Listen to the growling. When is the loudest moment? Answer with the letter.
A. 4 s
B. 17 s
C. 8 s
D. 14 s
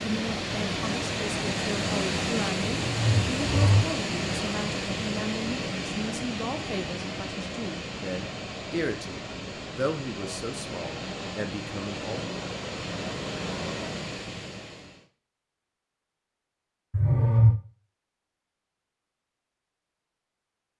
B.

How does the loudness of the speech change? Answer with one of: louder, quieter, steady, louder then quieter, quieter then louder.
steady.